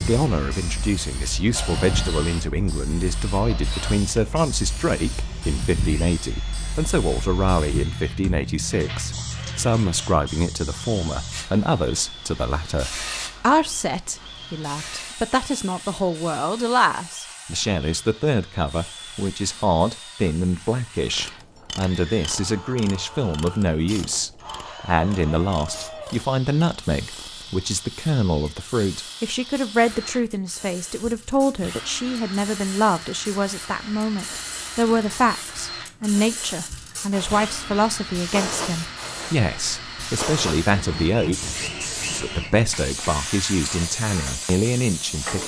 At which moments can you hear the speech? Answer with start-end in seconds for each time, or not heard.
0.0-41.5, 42.1-45.4.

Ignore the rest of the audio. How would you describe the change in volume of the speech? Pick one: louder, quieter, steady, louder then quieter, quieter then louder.
steady.